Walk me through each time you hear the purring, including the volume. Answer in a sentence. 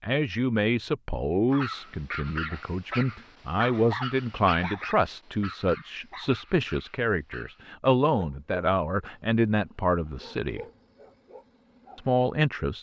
You can't hear the purring here.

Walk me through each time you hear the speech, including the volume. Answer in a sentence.
The speech can be heard from 0.0 to 10.6 s, at a steady volume; and briefly from 11.9 to 12.7 s.